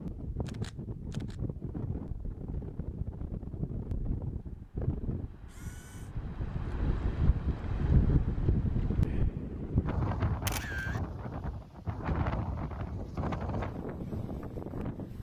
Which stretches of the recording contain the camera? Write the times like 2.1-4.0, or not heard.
0.5-1.4, 5.5-6.2, 10.4-11.0.